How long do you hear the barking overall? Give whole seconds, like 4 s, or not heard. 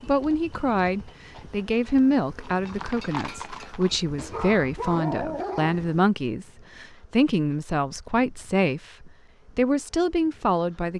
2 s.